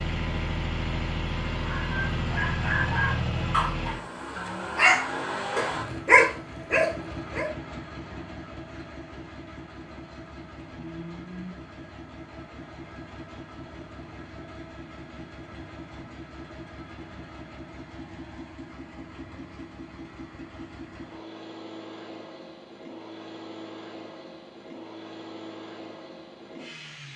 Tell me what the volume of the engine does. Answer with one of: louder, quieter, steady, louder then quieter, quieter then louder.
quieter.